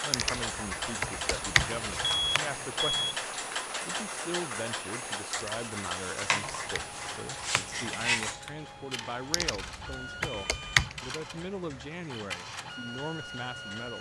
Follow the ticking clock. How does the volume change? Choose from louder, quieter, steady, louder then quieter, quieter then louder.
quieter.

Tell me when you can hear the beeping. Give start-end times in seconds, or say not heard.
2.0-3.1.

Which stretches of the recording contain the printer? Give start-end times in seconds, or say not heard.
6.5-13.9.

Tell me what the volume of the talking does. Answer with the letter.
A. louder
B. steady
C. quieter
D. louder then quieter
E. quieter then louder
B.